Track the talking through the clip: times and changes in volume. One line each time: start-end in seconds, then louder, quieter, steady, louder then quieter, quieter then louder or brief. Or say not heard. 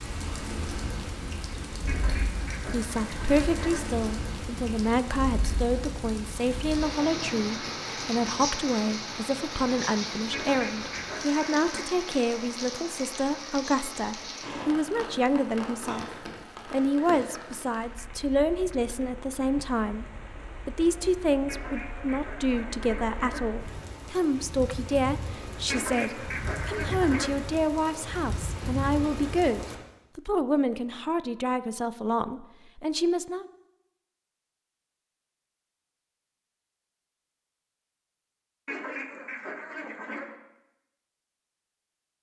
2.6-16.1 steady
16.6-33.5 steady.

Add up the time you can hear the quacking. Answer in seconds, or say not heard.
9 s.